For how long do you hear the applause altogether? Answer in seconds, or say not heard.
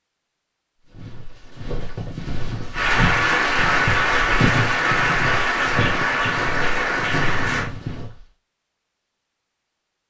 5 s.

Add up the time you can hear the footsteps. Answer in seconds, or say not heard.
7 s.